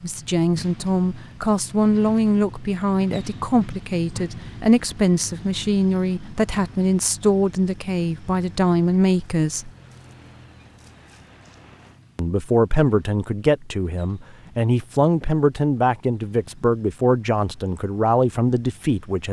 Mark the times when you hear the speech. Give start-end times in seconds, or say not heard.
0.0-9.7, 12.2-19.2.